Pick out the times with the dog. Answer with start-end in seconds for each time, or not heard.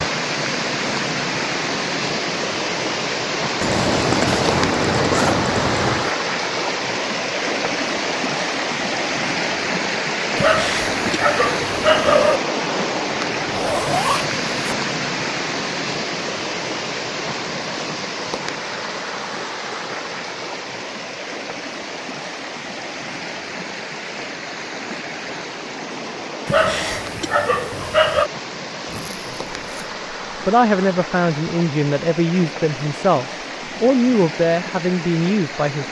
10.3-12.4, 26.4-28.3.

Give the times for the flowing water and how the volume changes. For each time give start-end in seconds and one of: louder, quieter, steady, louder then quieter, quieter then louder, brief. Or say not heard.
0.0-35.8 quieter.